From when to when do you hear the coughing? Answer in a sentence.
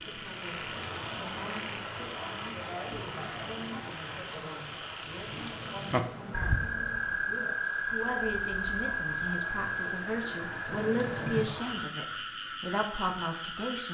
The coughing can't be heard in this clip.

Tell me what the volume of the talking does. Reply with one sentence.
The loudness of the talking goes up.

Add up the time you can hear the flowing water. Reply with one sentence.
You can hear the flowing water for 12 seconds altogether.